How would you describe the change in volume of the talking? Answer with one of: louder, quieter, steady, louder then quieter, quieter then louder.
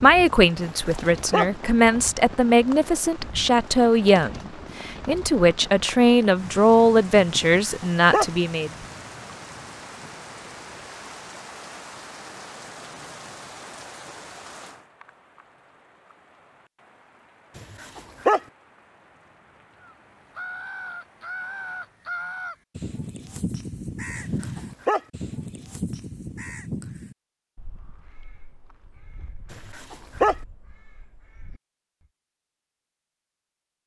steady.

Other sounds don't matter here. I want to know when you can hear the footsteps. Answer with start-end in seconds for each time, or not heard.
not heard.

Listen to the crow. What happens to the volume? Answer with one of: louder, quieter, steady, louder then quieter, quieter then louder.
quieter.